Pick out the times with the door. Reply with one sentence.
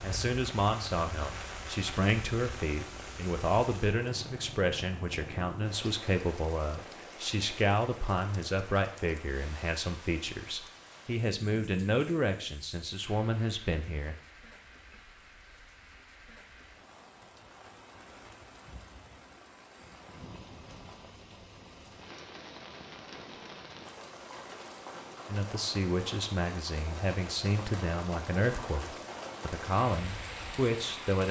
The door can't be heard in this clip.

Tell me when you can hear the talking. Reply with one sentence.
The talking can be heard from 0.0 to 14.2 s and from 25.2 to 31.2 s.